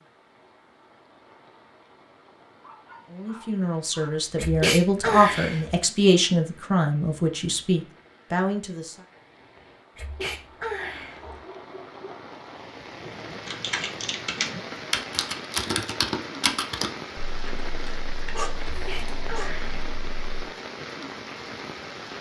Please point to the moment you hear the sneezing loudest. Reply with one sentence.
The volume of the sneezing peaks at 5 seconds.